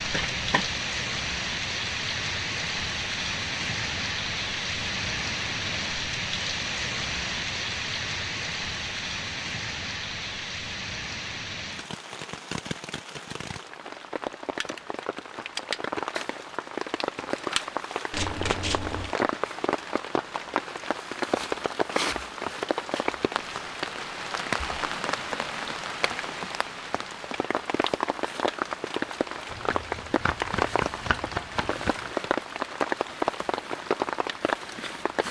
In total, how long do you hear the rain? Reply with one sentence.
The rain can be heard for 35 seconds in total.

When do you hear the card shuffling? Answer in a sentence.
You can hear the card shuffling from 0.1 to 0.8 s, from 18.1 to 19.1 s and from 29.5 to 31.9 s.